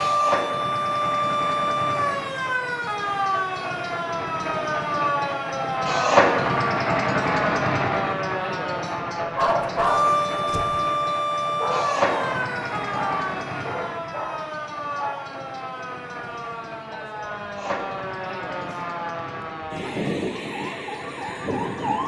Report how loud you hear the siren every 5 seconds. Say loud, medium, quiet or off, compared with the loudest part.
loud, loud, loud, medium, loud.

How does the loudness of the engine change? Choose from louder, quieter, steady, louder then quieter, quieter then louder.
louder then quieter.